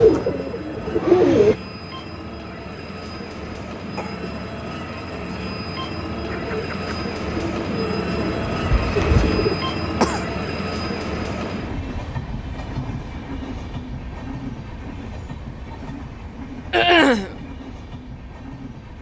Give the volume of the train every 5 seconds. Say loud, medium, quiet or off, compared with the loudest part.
medium, loud, loud, medium.